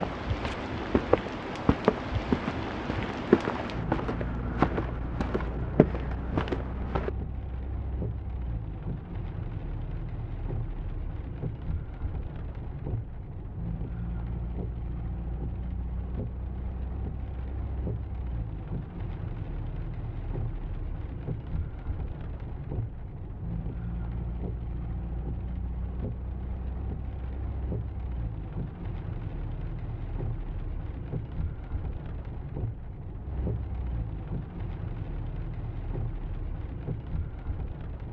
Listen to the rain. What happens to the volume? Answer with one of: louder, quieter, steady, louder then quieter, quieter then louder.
steady.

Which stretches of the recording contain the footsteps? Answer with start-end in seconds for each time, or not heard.
0.0-7.1.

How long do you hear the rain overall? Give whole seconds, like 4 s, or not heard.
38 s.